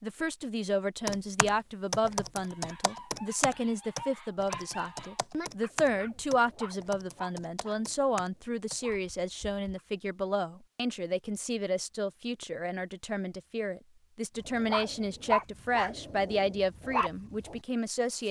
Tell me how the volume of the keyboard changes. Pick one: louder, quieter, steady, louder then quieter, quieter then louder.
quieter.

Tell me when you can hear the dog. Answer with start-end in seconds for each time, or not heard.
2.5-9.8, 14.4-17.6.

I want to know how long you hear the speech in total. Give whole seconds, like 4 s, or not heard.
18 s.